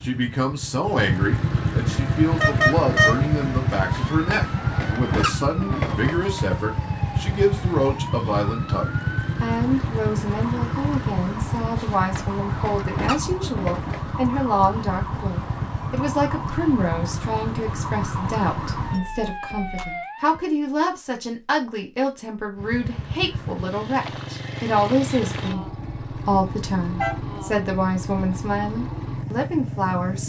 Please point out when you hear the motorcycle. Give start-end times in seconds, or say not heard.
0.0-19.0, 22.6-30.2.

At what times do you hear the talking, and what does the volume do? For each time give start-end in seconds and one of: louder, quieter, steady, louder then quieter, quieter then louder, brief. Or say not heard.
0.0-30.2 steady.